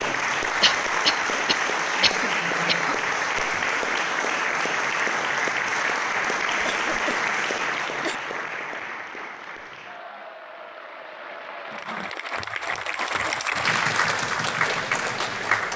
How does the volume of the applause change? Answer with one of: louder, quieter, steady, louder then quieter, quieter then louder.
quieter then louder.